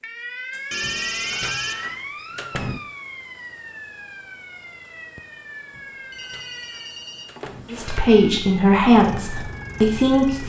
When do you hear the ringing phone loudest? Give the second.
1 s.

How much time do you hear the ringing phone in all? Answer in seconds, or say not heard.
3 s.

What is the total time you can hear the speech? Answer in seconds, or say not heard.
3 s.